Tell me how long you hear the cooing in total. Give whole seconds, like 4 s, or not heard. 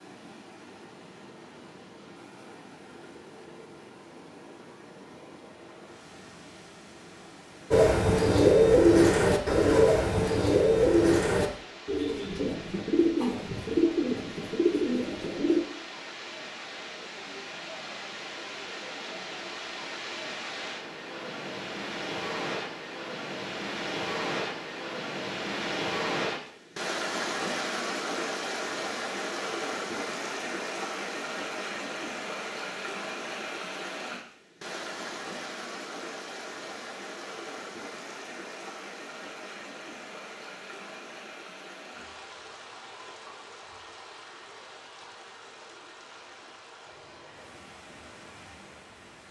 8 s.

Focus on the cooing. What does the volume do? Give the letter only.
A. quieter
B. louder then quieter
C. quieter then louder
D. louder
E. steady
A.